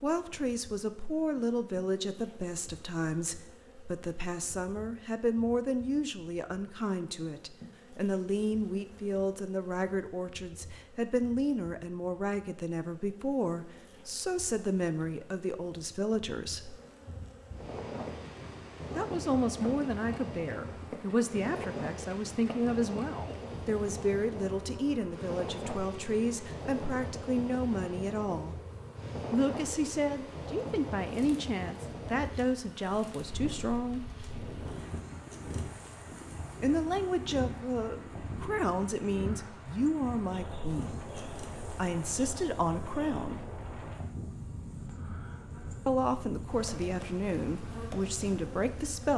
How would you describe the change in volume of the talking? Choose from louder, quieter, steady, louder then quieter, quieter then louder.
steady.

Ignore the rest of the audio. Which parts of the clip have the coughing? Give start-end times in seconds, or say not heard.
not heard.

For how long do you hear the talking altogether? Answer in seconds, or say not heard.
41 s.